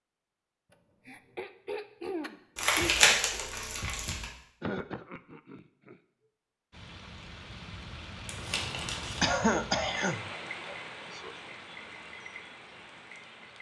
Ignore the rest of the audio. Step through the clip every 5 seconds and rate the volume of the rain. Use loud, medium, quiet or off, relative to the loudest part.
off, loud, loud.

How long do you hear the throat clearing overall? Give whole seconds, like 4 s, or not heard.
6 s.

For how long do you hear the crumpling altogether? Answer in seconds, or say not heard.
3 s.